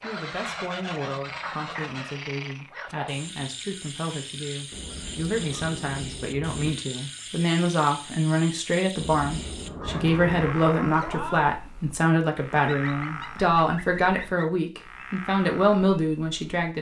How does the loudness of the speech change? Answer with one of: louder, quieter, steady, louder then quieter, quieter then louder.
louder.